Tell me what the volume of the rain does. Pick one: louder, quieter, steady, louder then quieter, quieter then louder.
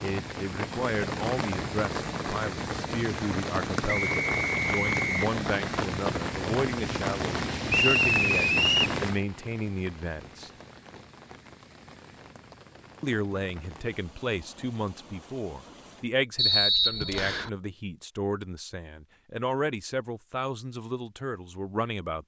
quieter.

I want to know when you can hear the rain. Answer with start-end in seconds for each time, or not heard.
0.0-16.1.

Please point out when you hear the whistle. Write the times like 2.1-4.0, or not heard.
3.9-5.3, 7.7-8.9, 16.4-17.5.